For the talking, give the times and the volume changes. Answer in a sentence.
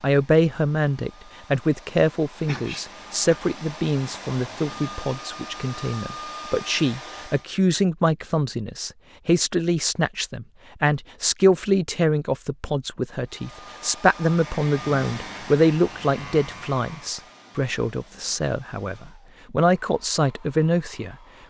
You can hear the talking from 0.0 to 21.1 s, at a steady volume.